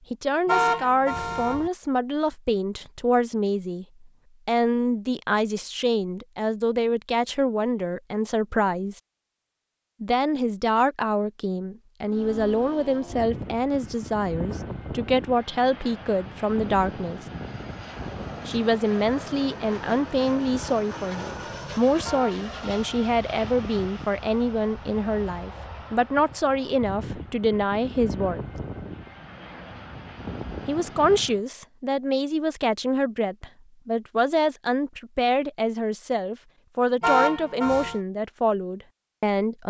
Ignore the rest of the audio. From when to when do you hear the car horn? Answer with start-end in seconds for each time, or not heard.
0.5-1.7, 22.1-23.1, 37.0-38.0.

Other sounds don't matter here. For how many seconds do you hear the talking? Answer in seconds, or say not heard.
35 s.